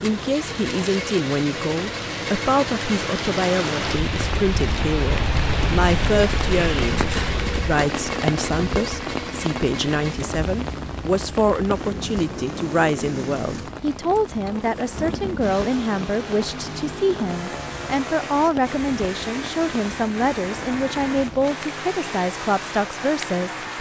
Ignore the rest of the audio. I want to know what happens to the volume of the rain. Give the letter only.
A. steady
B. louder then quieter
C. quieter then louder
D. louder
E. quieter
E.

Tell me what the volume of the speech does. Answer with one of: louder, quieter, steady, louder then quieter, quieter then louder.
steady.